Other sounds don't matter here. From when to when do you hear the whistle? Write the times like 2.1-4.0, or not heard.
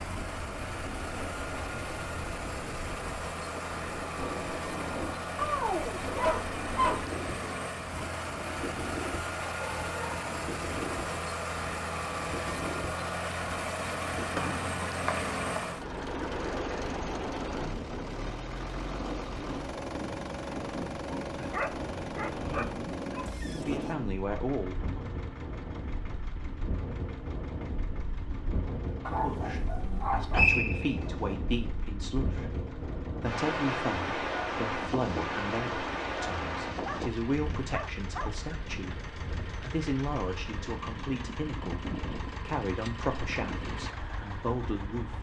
14.3-15.7, 29.9-31.1.